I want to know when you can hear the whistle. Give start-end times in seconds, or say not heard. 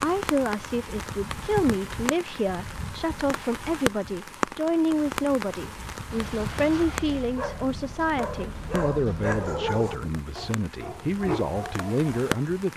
not heard.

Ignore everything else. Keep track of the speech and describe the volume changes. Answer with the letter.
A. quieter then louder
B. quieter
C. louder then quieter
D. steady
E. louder
D.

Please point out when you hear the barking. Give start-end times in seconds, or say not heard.
6.1-12.1.